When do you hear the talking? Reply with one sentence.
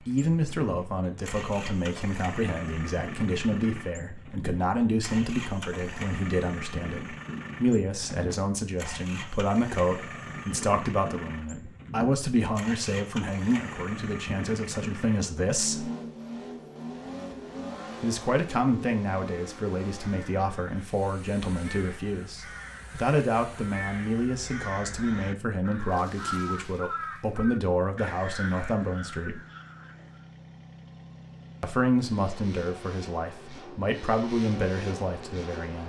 You can hear the talking from 0.0 to 15.9 s, from 18.0 to 29.4 s and from 31.6 to 35.8 s.